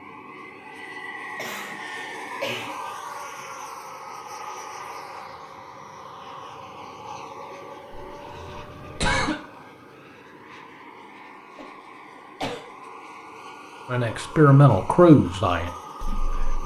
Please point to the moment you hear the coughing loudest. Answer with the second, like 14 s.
9 s.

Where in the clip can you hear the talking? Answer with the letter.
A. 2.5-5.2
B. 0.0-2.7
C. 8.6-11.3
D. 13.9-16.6
D.